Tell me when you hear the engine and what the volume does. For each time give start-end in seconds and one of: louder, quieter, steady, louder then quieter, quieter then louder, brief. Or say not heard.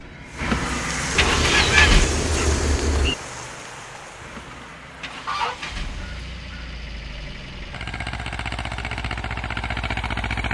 0.0-2.1 brief
4.2-10.4 louder.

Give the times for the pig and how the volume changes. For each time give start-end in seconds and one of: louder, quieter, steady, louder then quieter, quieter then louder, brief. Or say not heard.
not heard.